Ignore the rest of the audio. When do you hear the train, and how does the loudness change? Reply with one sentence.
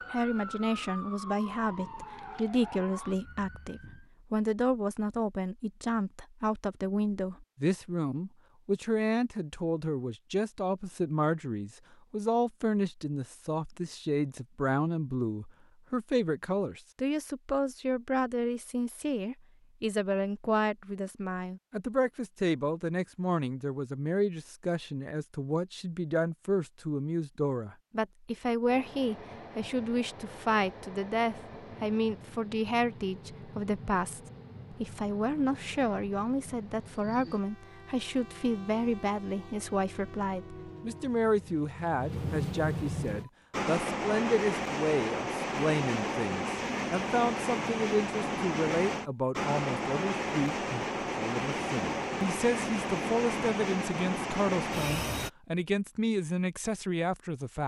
The train can be heard from 28.6 to 55.3 s, getting louder.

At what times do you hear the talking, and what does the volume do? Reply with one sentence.
You can hear the talking from 0.1 to 57.6 s, at a steady volume.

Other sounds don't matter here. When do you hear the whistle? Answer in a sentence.
You can't hear the whistle here.